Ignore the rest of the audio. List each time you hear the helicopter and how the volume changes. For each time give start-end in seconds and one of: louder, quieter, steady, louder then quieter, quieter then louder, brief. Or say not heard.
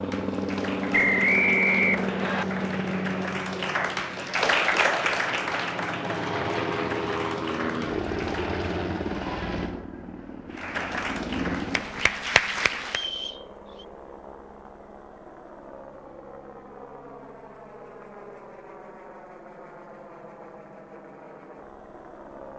0.0-22.5 quieter.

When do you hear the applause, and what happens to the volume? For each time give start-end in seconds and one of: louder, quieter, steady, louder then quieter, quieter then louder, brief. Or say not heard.
0.0-8.7 louder then quieter
10.5-13.1 brief.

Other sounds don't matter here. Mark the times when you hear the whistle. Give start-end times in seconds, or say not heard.
0.9-2.5, 12.8-13.8.